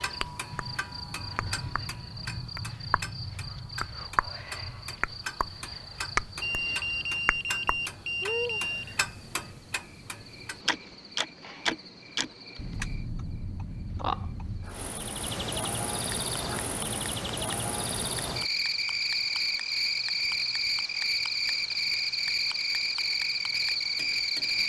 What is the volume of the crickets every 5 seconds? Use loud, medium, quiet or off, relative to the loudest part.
quiet, quiet, quiet, loud, loud.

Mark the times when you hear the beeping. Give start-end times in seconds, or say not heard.
6.4-8.9.